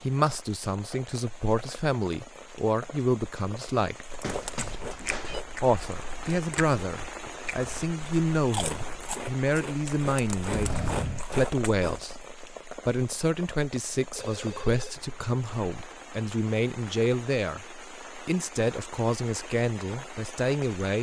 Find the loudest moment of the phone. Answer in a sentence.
The volume of the phone peaks at 11 seconds.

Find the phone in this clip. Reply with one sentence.
The phone can be heard from 4.2 to 5.4 s, from 10.5 to 11.2 s and from 14.2 to 16.1 s.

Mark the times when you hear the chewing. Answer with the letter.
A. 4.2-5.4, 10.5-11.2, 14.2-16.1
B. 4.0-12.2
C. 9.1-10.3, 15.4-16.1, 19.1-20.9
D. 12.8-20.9
B.